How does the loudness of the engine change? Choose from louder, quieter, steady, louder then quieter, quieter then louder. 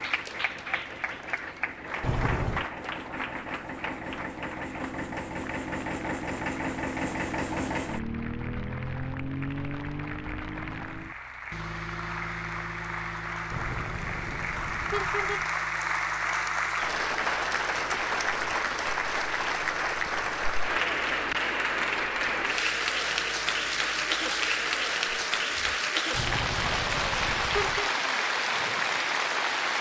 louder then quieter.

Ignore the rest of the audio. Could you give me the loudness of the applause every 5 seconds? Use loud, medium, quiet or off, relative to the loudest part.
medium, quiet, medium, loud, loud, loud.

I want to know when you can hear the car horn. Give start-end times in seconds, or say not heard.
2.0-2.6, 13.5-15.5, 26.1-27.9.